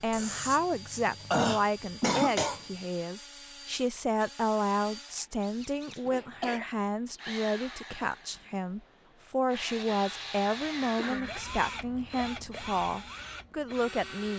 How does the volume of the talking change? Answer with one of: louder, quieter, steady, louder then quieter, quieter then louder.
steady.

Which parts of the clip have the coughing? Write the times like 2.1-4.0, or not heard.
0.1-2.6, 5.2-6.7, 9.8-11.4.